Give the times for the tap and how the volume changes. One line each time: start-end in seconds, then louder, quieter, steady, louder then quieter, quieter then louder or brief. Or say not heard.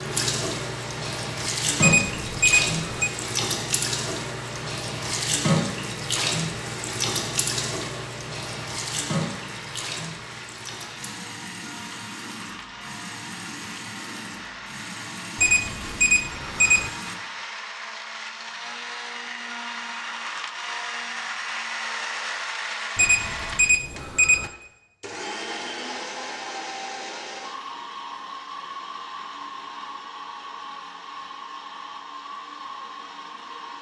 0.0-17.2 quieter.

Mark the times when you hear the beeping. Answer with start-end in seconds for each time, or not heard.
1.8-3.1, 15.3-16.9, 22.9-24.5.